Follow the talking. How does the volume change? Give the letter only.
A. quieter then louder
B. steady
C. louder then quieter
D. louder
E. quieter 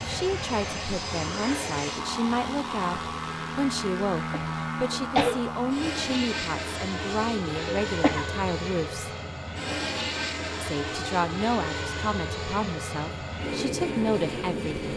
B.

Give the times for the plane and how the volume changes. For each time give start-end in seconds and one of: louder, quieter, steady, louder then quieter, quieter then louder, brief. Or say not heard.
0.0-14.9 steady.